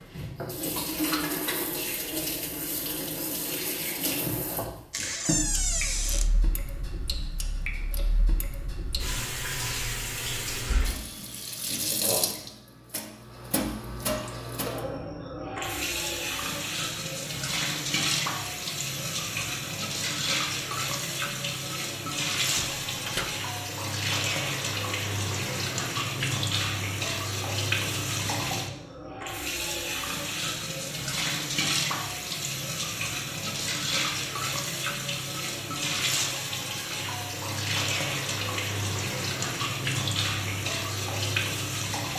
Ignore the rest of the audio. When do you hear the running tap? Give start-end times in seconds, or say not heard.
0.0-42.1.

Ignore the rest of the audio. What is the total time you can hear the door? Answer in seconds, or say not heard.
2 s.